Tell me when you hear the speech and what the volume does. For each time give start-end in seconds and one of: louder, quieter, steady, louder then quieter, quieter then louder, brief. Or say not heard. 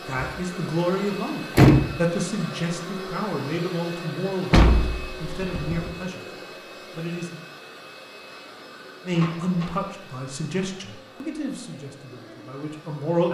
0.1-7.4 quieter
9.1-13.2 quieter.